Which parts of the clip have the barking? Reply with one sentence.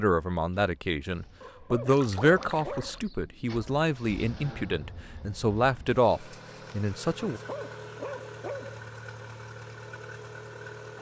The barking can be heard from 1.4 to 3.0 s and from 7.3 to 8.8 s.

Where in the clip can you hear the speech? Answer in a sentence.
The speech can be heard from 0.0 to 7.4 s.